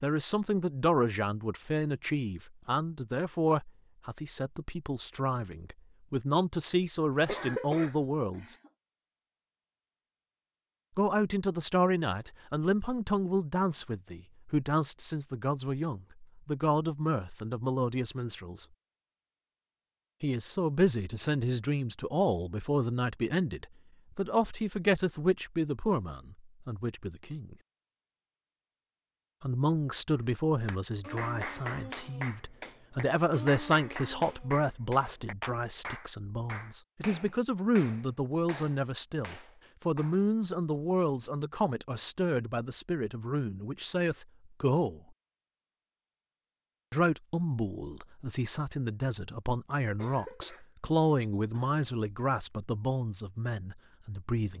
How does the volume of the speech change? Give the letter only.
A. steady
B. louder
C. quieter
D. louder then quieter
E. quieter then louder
A.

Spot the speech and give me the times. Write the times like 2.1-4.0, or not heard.
0.0-8.6, 10.9-18.6, 20.2-27.6, 29.4-45.0, 46.9-54.5.